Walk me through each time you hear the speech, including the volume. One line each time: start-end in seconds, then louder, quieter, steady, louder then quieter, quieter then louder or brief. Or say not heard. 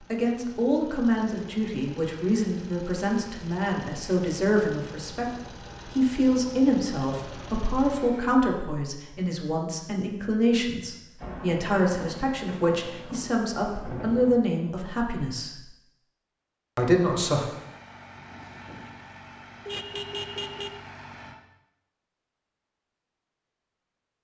0.0-15.7 steady
16.8-17.5 brief.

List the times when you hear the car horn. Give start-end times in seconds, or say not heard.
19.6-20.8.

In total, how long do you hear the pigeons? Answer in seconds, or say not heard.
not heard.